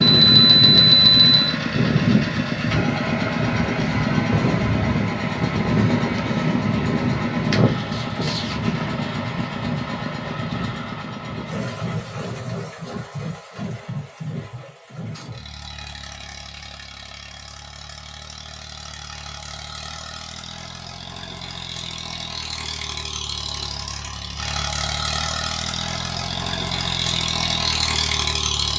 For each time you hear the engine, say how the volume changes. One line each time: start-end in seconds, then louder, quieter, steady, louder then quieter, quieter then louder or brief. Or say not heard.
0.0-28.7 quieter then louder.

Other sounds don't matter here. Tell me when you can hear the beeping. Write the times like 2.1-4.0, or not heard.
0.0-1.6.